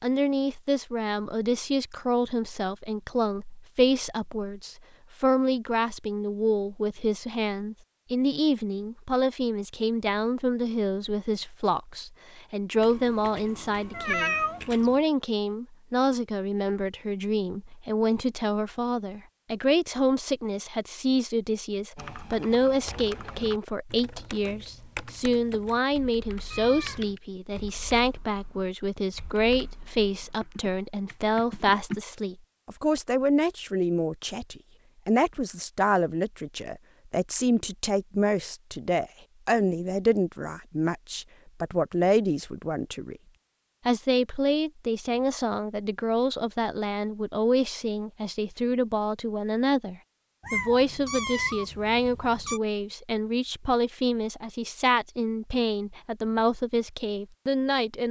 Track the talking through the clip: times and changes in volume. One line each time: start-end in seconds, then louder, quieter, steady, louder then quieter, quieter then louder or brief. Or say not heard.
0.0-43.2 steady
43.9-58.0 steady.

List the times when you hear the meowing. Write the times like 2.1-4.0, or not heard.
12.8-15.0, 26.5-27.2, 50.4-52.6.